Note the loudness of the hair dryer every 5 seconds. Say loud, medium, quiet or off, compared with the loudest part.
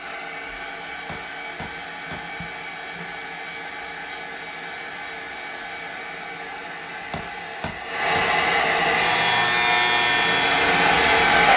quiet, medium, loud.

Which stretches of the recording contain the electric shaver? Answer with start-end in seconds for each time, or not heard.
8.9-11.5.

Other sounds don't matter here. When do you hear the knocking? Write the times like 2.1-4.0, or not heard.
1.1-2.2, 7.1-8.3.